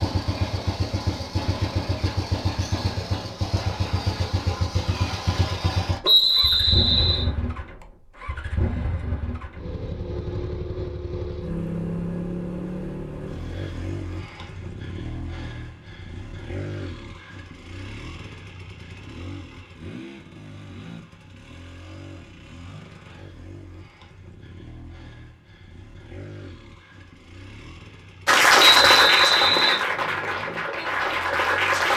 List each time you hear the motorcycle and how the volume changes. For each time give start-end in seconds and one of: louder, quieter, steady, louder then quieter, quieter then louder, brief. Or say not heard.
0.0-31.9 quieter.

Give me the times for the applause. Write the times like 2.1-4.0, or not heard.
28.2-31.9.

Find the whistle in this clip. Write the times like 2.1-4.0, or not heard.
6.0-7.3, 28.6-29.8.